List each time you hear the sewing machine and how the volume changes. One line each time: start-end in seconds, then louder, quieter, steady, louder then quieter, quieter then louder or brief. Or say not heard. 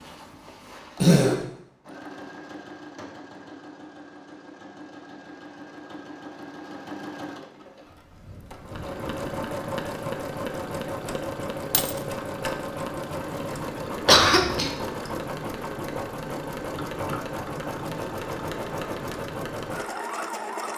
0.0-20.7 louder.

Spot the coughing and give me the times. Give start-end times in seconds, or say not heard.
1.0-1.4, 14.1-14.7.